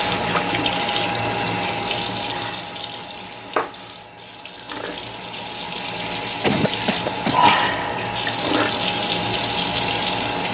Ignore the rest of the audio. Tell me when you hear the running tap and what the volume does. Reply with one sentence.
You can hear the running tap from 0.0 to 10.4 s, getting quieter then louder.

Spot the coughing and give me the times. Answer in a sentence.
The coughing can be heard from 6.4 to 7.5 s.